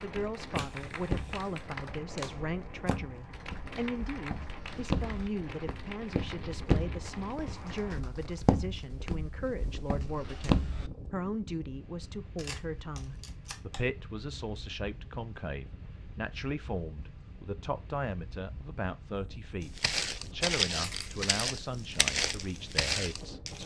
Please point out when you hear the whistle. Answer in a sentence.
You can't hear the whistle here.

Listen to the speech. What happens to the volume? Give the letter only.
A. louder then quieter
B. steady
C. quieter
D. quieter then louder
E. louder
B.